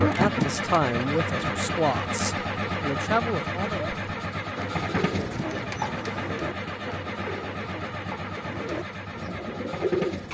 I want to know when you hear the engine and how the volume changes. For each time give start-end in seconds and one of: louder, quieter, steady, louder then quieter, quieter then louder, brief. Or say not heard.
0.0-10.2 quieter.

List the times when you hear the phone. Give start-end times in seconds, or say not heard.
not heard.